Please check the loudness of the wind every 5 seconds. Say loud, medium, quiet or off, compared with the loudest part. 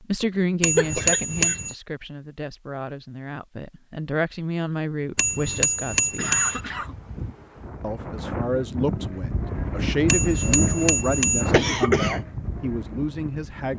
off, medium, loud.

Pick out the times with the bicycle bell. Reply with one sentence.
You can hear the bicycle bell from 0.6 to 1.8 s, from 5.2 to 6.6 s and from 10.1 to 11.5 s.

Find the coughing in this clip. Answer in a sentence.
You can hear the coughing from 0.8 to 1.6 s, from 6.2 to 7.0 s and from 11.5 to 12.2 s.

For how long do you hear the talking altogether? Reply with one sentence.
You can hear the talking for 12 seconds altogether.